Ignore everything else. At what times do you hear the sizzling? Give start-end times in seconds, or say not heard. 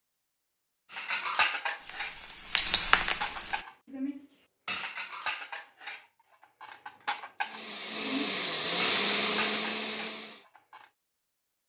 1.8-3.6.